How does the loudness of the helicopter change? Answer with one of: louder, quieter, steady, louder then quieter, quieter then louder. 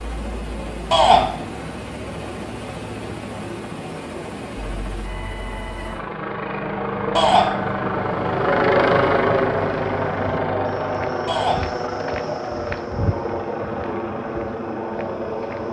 louder then quieter.